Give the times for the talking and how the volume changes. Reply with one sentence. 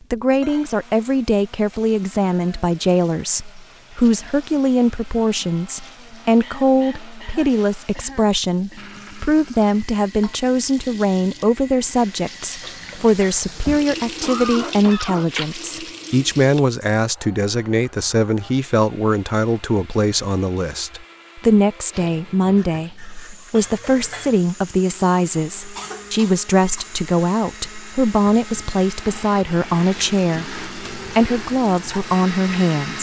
The talking can be heard from 0.1 to 32.9 s, at a steady volume.